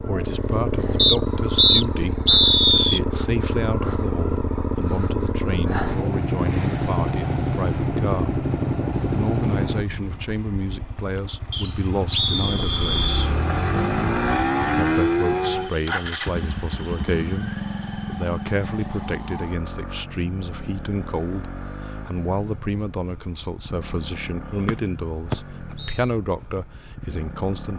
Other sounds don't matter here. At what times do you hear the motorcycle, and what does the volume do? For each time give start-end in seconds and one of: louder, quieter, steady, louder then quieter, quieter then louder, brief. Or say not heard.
0.0-27.7 quieter.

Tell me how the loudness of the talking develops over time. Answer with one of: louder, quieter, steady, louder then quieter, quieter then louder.
steady.